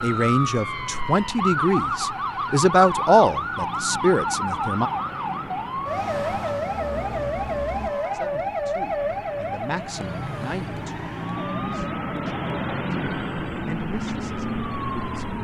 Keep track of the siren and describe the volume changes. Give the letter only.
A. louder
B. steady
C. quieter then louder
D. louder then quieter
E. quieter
E.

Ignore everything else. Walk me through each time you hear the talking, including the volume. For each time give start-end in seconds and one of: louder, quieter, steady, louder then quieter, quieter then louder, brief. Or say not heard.
0.0-4.9 louder then quieter
8.1-15.3 quieter then louder.